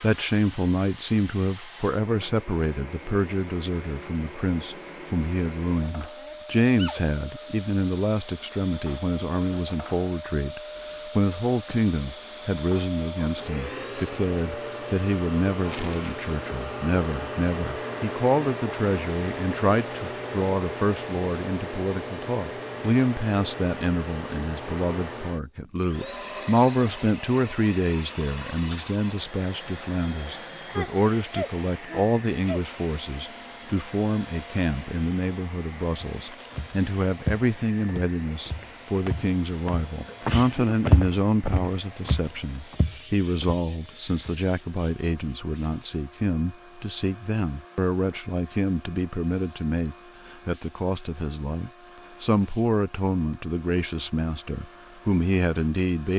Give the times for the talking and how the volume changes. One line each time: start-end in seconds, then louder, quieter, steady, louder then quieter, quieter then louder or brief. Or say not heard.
0.0-56.1 steady.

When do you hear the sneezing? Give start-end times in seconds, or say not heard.
6.2-7.0, 30.7-32.6, 39.5-40.7.